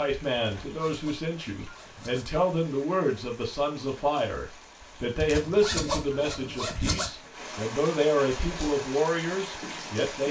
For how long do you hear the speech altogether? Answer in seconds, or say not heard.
10 s.